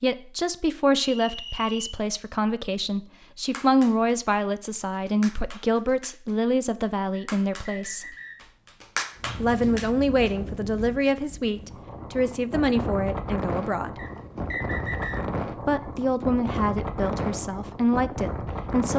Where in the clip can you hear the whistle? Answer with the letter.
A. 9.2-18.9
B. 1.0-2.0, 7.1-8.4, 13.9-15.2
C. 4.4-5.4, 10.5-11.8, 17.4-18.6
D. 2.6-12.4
B.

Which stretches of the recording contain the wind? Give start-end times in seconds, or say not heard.
9.2-18.9.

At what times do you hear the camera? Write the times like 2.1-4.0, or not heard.
not heard.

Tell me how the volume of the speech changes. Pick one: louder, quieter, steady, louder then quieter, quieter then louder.
steady.